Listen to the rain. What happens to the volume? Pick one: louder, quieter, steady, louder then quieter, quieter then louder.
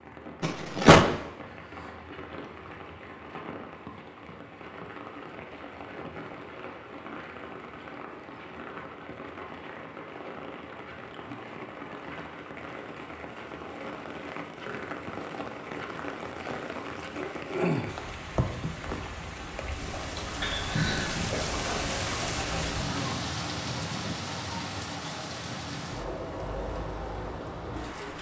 louder.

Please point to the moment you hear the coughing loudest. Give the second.
1 s.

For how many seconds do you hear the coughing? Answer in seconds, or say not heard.
2 s.